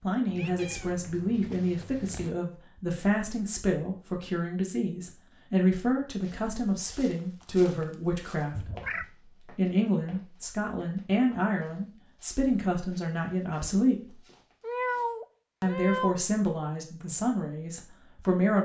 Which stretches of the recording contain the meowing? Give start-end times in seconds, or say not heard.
0.2-2.2, 8.5-9.1, 14.6-16.2.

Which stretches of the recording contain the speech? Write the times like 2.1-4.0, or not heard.
0.0-14.2, 15.6-18.6.